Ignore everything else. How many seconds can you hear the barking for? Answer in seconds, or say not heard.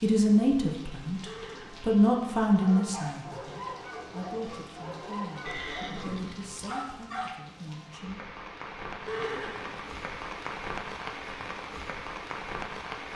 5 s.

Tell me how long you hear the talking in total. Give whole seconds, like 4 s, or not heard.
8 s.